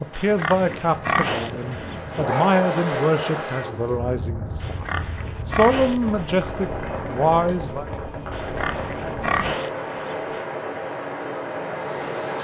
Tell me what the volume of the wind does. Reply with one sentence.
The volume of the wind stays about the same.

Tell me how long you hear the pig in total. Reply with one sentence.
You can hear the pig for 6 seconds altogether.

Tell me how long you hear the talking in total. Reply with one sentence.
You can hear the talking for 8 seconds altogether.